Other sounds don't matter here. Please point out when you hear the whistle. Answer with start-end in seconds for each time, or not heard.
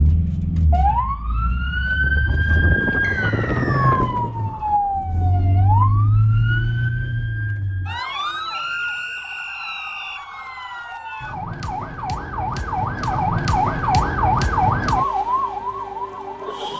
3.0-4.0, 8.5-10.2.